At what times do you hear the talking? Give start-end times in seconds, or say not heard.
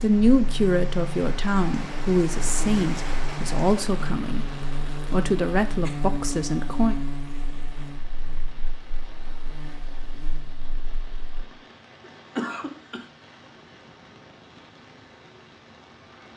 0.0-4.5, 5.1-7.0.